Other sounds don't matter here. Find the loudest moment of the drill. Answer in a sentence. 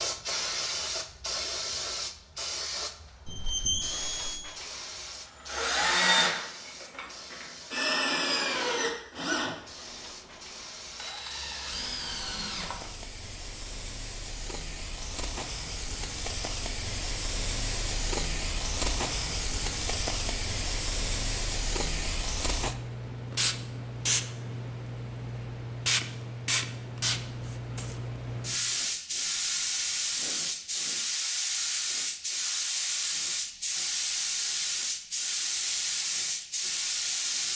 The loudest moment of the drill is at 6 seconds.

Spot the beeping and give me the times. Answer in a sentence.
You can hear the beeping from 3.2 to 4.5 s.